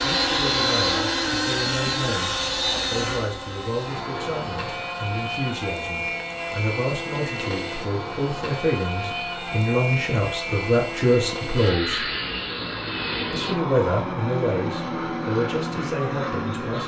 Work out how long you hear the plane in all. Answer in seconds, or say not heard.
17 s.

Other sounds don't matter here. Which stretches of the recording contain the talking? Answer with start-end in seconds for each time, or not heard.
0.0-12.1, 13.3-16.8.